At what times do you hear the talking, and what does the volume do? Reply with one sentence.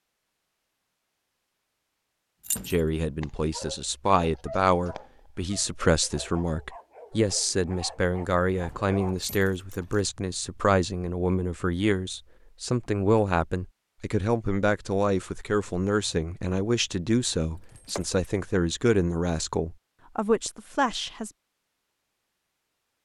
You can hear the talking from 2.6 to 21.3 s, at a steady volume.